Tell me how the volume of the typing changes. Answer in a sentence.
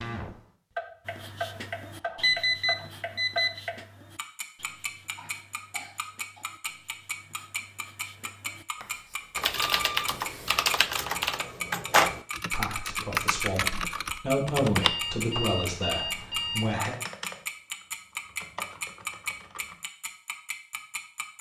The volume of the typing goes down.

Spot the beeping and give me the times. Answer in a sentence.
You can hear the beeping from 2.2 to 3.6 s, from 9.6 to 10.1 s and from 14.8 to 16.8 s.